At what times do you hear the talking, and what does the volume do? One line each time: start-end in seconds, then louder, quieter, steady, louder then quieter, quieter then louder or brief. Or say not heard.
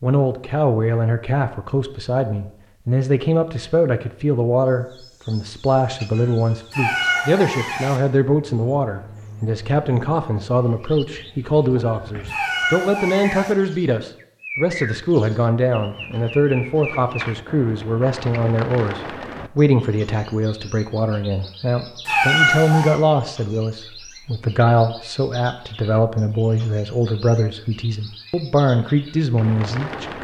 0.0-30.1 steady.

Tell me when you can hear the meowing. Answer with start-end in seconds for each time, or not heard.
6.7-8.0, 12.2-13.6, 22.1-22.9.